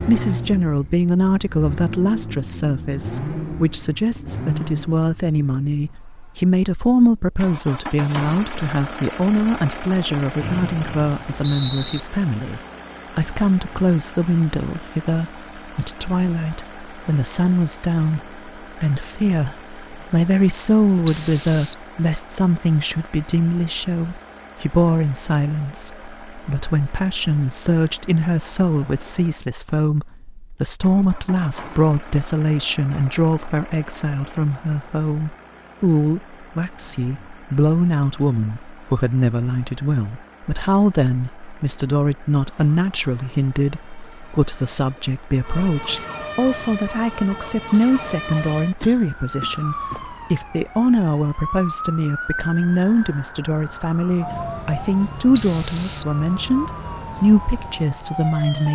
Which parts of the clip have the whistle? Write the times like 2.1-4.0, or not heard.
10.4-12.0, 21.1-21.8, 55.4-56.0.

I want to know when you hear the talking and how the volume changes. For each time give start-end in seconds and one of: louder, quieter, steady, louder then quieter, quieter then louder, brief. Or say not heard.
0.1-58.6 steady.